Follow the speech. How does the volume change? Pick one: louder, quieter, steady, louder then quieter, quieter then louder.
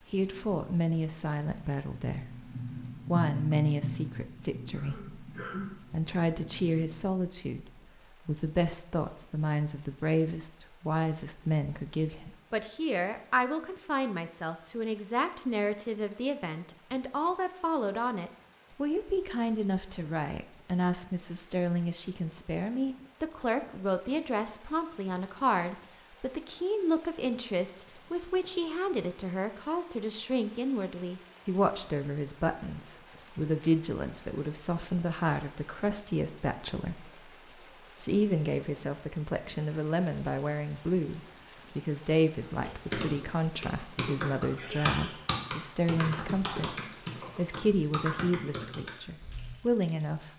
steady.